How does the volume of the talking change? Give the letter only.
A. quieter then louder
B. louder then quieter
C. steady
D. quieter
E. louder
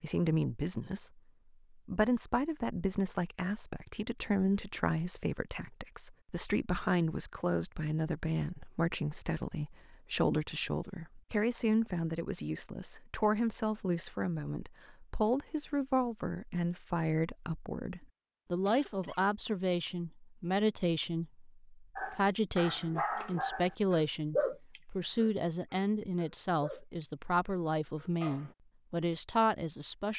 C.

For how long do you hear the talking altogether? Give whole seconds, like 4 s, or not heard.
30 s.